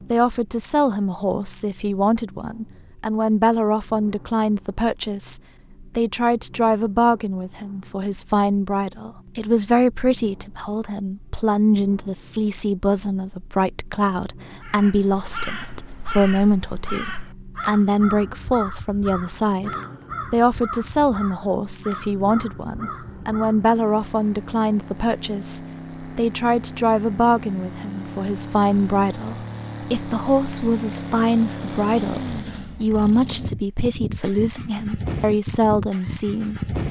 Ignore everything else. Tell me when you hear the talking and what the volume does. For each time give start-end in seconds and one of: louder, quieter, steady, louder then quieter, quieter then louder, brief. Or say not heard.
0.1-19.7 steady
20.3-36.6 steady.